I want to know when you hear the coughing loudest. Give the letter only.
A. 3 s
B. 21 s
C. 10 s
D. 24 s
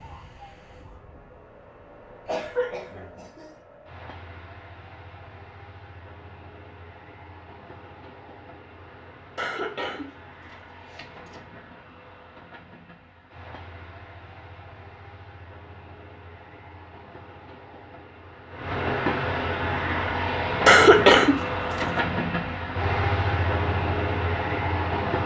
B.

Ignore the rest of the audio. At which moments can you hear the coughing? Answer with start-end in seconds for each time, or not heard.
2.2-3.5, 9.3-11.3, 20.6-21.9.